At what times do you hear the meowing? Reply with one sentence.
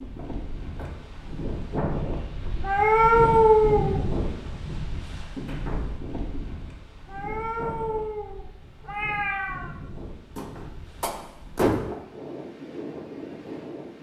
You can hear the meowing from 2.6 to 4.0 s and from 7.0 to 9.8 s.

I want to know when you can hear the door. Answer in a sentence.
The door can be heard from 0.1 to 0.9 s, from 5.3 to 6.5 s and from 10.3 to 11.9 s.